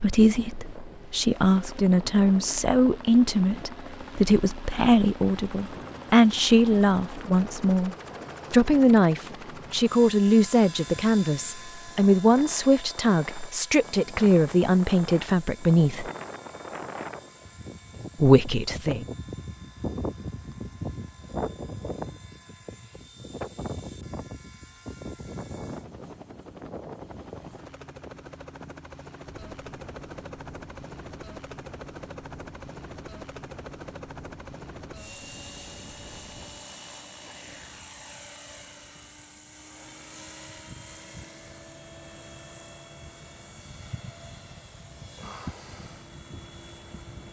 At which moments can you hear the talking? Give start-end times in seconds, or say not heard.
0.0-16.1, 18.1-19.1.